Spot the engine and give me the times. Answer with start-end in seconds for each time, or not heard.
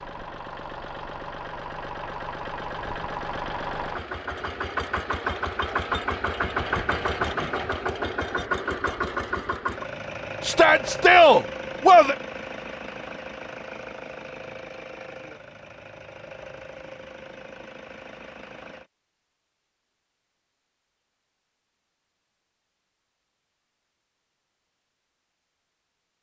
0.0-18.9.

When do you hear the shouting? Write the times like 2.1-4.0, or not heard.
10.4-12.2.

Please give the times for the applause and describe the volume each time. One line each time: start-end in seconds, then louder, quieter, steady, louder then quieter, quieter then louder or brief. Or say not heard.
not heard.